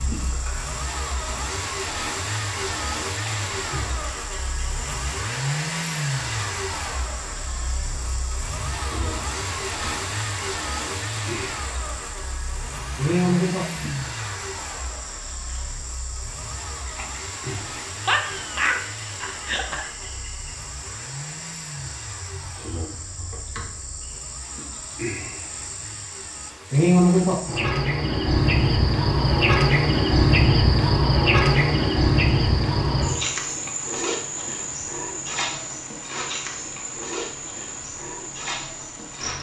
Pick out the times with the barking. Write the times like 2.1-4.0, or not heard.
18.0-19.9.